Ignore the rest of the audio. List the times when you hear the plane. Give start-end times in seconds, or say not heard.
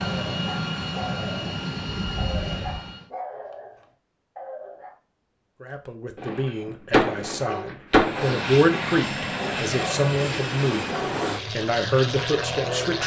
0.0-3.0, 7.9-13.0.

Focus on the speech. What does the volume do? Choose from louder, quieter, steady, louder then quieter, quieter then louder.
louder.